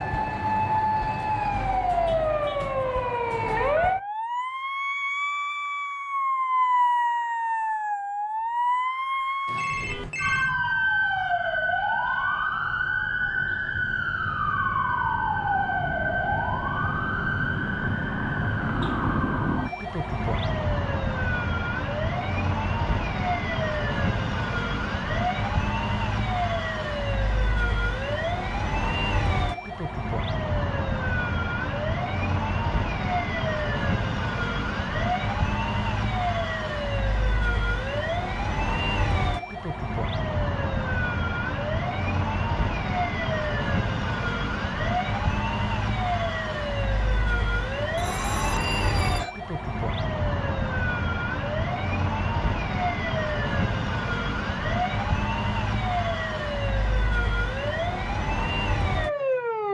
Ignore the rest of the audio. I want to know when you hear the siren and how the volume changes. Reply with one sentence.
The siren can be heard from 0.0 to 59.7 s, at a steady volume.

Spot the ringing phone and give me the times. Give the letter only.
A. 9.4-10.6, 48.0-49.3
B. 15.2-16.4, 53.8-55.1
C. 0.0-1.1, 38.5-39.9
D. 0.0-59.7
A.